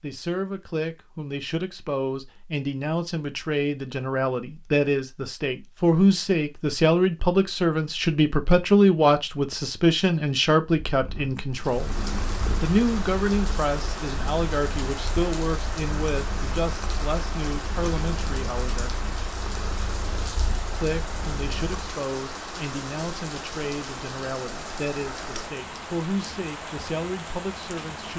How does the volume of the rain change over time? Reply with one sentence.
The volume of the rain stays about the same.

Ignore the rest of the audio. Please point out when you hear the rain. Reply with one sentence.
The rain can be heard from 11.5 to 28.1 s.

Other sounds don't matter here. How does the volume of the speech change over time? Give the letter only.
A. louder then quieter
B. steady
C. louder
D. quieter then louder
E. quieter
A.